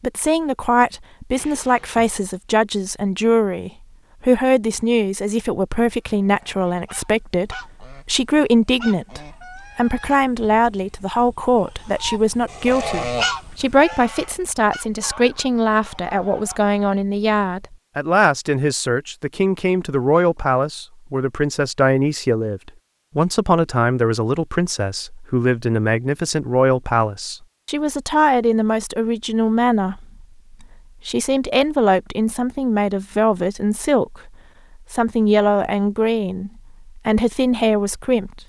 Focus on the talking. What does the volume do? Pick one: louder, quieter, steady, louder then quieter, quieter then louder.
steady.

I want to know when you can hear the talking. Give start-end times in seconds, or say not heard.
0.0-34.3, 34.9-38.4.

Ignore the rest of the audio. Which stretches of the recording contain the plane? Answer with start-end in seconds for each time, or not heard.
not heard.